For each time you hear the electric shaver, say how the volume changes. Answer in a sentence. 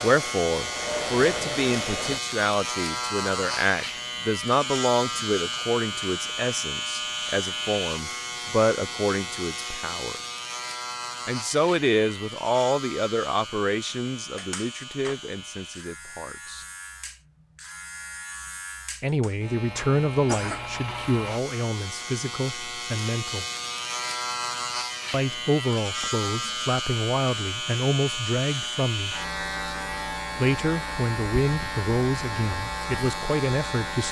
The electric shaver can be heard from 0.0 to 34.0 s, getting quieter then louder.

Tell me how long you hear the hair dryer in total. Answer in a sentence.
You can hear the hair dryer for 2 seconds altogether.